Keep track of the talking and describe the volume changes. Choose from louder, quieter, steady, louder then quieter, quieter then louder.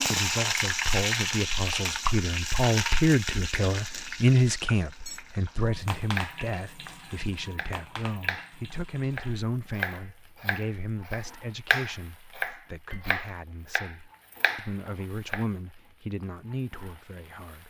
quieter.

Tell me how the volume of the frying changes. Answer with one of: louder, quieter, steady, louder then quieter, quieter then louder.
quieter.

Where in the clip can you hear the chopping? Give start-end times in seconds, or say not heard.
6.2-15.4.